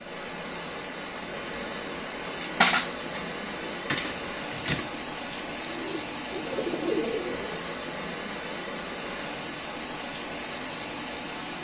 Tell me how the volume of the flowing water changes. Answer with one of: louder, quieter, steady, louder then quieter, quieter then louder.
steady.